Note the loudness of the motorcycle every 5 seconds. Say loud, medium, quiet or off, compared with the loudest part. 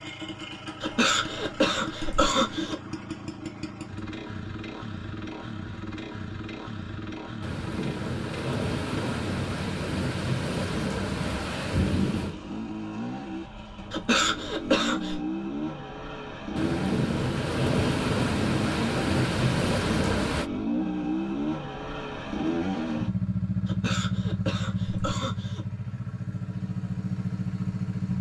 medium, medium, medium, loud, loud, loud.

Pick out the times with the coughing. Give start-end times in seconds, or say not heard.
0.8-2.8, 13.9-15.2, 23.6-25.6.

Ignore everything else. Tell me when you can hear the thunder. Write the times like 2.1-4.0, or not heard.
7.4-12.3, 16.6-20.5.